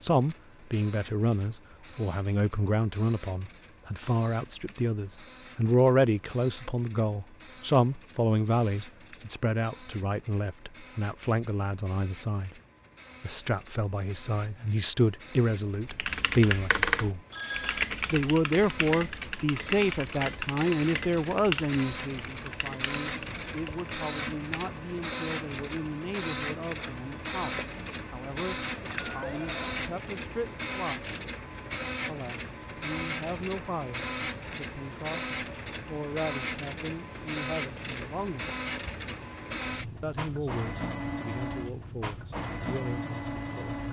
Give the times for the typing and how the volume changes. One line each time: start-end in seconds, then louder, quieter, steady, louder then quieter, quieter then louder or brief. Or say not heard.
15.8-23.9 quieter.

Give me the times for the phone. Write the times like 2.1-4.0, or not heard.
17.3-17.9, 28.8-29.8.